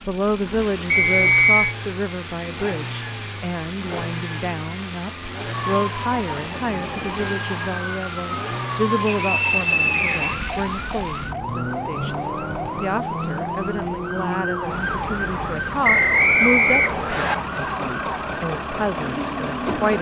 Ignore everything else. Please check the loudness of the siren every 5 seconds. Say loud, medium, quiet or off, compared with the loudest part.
off, loud, loud, loud.